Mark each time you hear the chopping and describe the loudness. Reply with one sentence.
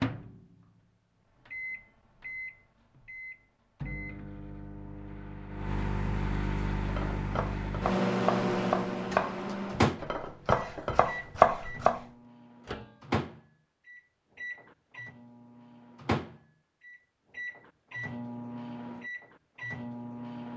You can hear the chopping from 6.8 to 12.0 s, getting louder.